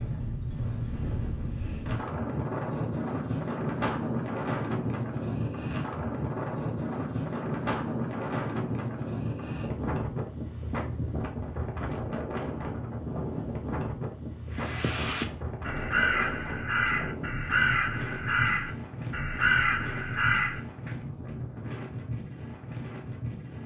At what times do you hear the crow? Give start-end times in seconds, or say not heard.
14.5-20.9.